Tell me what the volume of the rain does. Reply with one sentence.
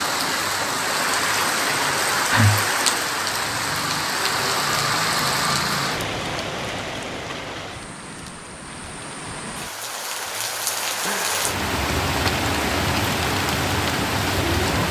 The loudness of the rain goes down, then up.